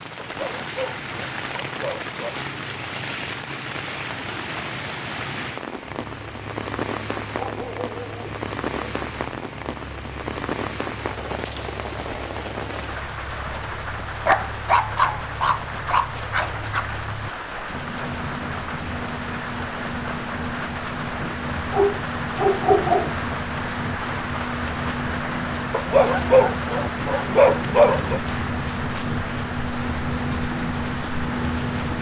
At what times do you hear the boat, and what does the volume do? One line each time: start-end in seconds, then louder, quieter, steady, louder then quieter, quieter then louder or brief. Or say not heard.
5.8-31.9 louder.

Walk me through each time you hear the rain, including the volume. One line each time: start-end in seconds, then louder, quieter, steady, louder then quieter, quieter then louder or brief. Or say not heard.
0.0-31.9 steady.